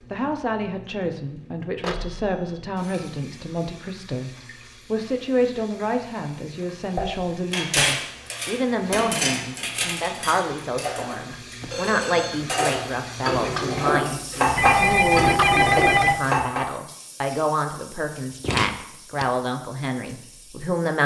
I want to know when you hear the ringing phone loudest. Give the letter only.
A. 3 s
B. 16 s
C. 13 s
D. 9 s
B.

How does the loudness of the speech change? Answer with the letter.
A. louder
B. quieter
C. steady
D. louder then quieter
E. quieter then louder
C.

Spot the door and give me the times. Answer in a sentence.
The door can be heard from 18.4 to 19.2 s.